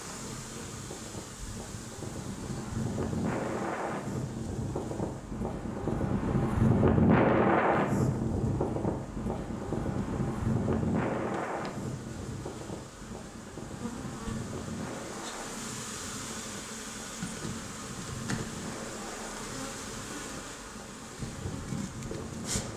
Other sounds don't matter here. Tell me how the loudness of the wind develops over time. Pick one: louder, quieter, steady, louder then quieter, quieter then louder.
louder then quieter.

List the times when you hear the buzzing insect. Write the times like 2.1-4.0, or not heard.
0.0-22.7.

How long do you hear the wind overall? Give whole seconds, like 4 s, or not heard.
23 s.